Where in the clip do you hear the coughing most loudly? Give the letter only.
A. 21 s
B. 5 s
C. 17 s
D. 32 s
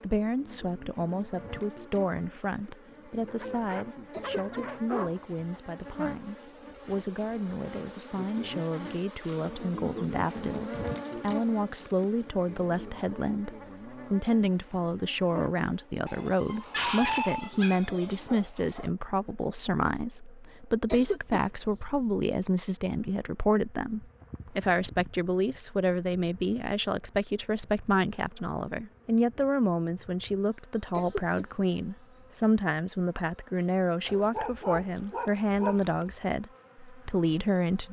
A.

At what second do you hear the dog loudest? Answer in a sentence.
The loudest moment of the dog is at 17 seconds.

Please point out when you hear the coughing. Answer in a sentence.
You can hear the coughing from 4.1 to 4.7 s, from 20.9 to 21.4 s and from 30.9 to 31.4 s.